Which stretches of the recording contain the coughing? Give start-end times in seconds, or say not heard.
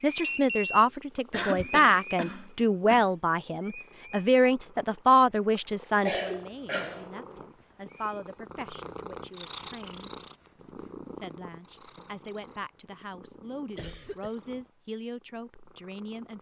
1.3-3.1, 6.0-7.1, 13.8-14.3.